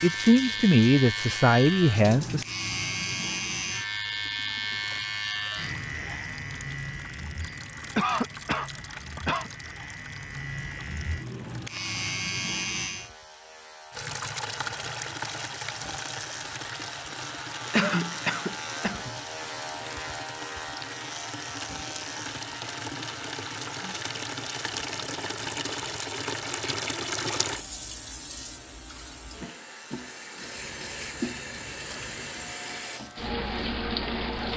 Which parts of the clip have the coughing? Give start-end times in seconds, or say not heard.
8.0-9.5, 17.7-19.2.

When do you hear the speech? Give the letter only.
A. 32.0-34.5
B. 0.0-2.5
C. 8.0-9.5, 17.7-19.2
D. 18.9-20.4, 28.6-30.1
B.